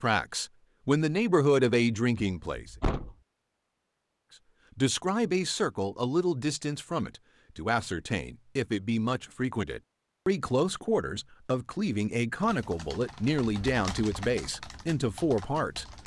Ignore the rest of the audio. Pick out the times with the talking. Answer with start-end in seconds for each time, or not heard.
0.0-2.7, 4.8-16.0.